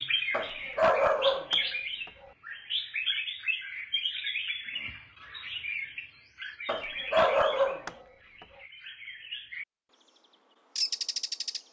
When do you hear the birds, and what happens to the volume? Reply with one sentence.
The birds can be heard from 0.0 to 10.1 s, getting quieter; and briefly from 10.8 to 11.6 s.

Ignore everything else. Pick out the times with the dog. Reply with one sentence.
You can hear the dog from 0.3 to 1.6 s and from 6.7 to 8.0 s.